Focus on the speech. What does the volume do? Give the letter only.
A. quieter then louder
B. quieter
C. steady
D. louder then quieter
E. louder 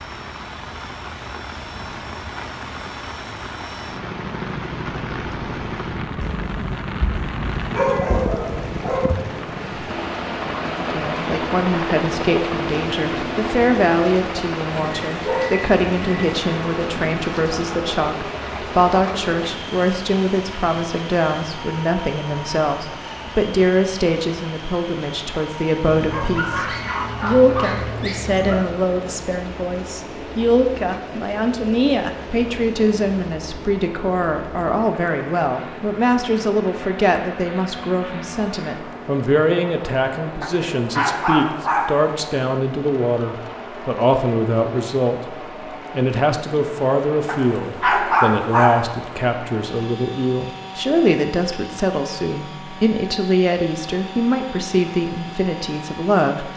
C.